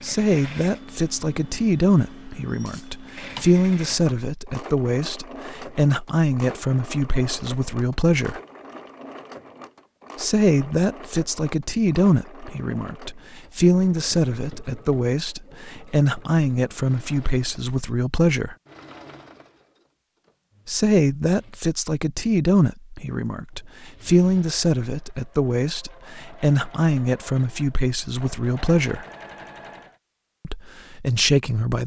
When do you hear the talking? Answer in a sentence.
The talking can be heard from 0.0 to 8.4 s, from 10.2 to 18.6 s, from 20.6 to 29.1 s and from 30.4 to 31.8 s.